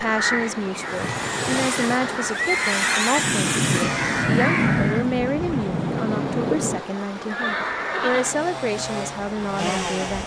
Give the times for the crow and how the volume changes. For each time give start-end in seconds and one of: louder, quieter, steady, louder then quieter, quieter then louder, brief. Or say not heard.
0.0-5.0 louder.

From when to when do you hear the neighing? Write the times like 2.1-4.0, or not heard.
0.9-3.0, 7.2-8.3.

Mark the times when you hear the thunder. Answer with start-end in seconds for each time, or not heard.
3.1-6.8.